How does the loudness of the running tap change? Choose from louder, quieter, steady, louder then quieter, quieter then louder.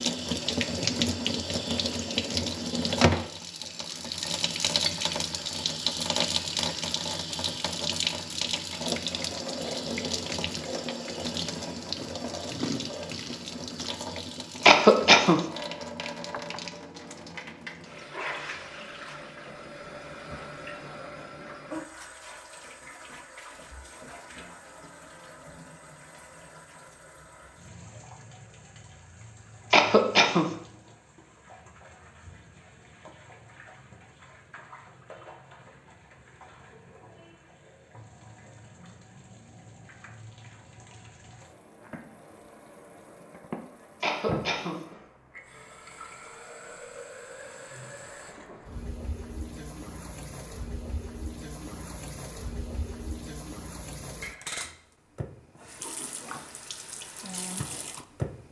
quieter then louder.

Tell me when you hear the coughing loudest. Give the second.
15 s.